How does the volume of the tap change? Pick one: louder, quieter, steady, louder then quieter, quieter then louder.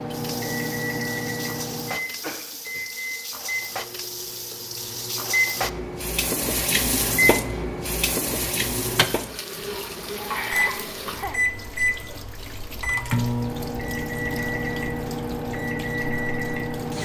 louder then quieter.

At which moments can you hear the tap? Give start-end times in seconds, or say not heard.
0.0-16.9.